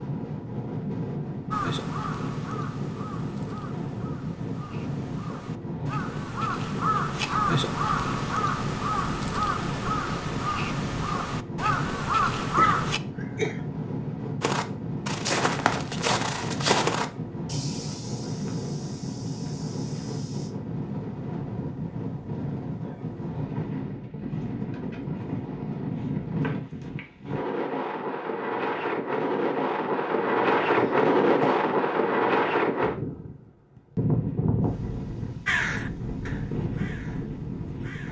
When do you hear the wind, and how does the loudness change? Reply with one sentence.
The wind can be heard from 0.0 to 38.0 s, getting louder.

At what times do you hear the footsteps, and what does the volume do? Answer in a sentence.
You can hear the footsteps from 14.4 to 20.5 s, getting quieter.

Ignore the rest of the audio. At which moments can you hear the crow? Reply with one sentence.
The crow can be heard from 1.5 to 13.0 s and from 35.5 to 38.0 s.